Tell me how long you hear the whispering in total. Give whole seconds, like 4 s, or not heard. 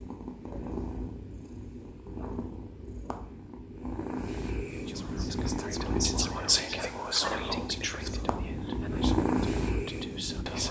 6 s.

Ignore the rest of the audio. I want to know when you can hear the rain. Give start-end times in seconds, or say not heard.
not heard.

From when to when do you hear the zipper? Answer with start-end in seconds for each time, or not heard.
not heard.